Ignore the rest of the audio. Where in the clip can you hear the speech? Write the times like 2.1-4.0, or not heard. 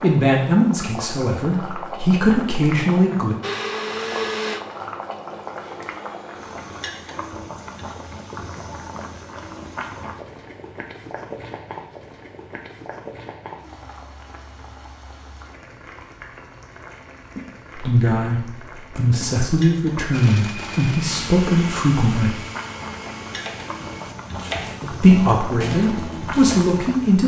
0.0-3.4, 17.8-22.4, 24.9-27.2.